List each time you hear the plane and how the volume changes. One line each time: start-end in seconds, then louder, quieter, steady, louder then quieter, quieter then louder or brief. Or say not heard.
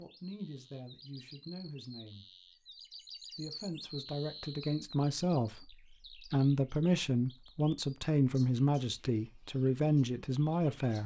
not heard.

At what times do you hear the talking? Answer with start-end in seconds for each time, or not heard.
0.0-2.4, 3.2-11.0.